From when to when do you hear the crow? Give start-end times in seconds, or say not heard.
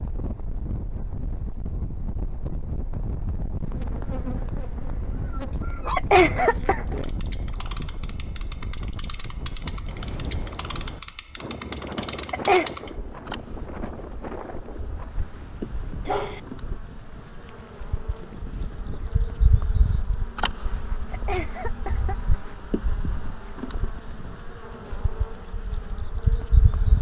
not heard.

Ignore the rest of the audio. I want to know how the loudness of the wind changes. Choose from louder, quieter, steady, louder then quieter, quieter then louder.
quieter.